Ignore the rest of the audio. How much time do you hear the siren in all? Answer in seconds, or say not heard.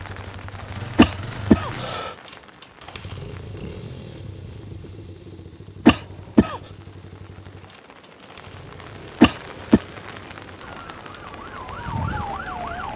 2 s.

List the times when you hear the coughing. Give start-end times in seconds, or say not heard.
0.9-2.1, 5.8-6.6, 9.2-9.8.